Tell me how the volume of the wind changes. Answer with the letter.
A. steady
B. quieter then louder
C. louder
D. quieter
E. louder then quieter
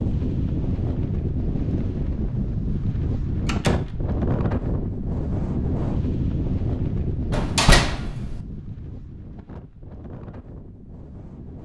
D.